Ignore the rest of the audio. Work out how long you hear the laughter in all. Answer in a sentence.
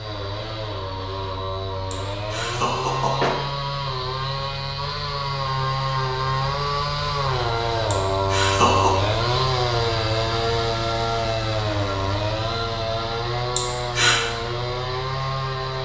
The laughter can be heard for 3 seconds in total.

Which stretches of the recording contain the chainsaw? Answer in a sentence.
You can hear the chainsaw from 0.0 to 15.7 s.